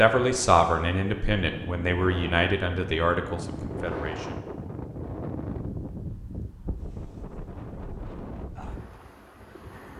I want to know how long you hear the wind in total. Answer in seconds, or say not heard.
10 s.